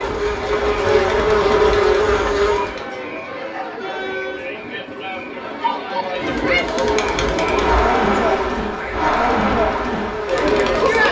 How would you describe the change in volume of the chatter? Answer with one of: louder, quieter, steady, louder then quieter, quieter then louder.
louder.